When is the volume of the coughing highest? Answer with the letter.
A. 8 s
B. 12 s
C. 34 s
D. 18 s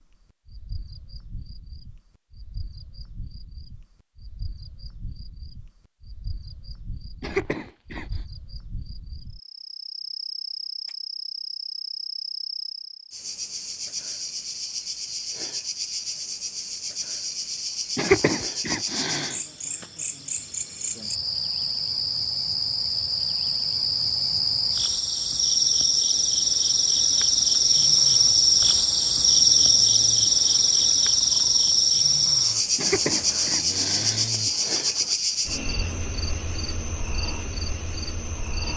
D.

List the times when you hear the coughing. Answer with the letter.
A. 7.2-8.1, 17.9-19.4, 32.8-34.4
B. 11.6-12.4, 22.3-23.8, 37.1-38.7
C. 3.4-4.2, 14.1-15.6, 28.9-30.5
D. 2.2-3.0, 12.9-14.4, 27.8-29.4
A.